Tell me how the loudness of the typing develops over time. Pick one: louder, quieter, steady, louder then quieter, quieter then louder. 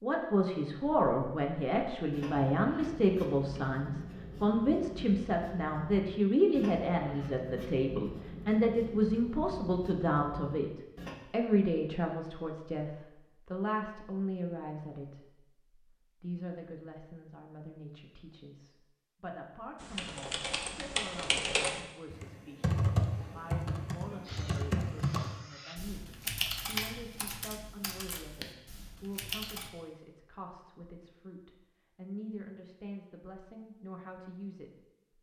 quieter.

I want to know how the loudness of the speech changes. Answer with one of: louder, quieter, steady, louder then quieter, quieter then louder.
quieter.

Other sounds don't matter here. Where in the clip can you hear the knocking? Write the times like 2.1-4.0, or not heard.
not heard.